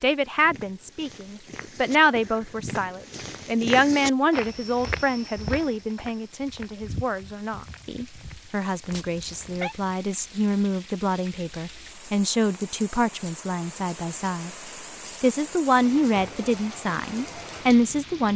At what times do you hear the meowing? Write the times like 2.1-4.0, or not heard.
8.9-9.8.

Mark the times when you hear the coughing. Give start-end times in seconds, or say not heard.
not heard.